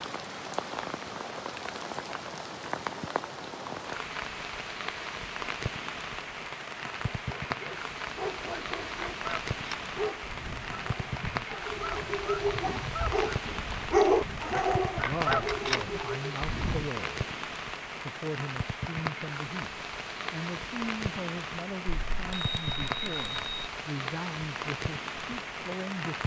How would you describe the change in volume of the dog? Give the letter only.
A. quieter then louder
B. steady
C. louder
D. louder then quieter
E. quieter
D.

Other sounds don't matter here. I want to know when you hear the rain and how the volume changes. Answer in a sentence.
You can hear the rain from 0.0 to 26.2 s, at a steady volume.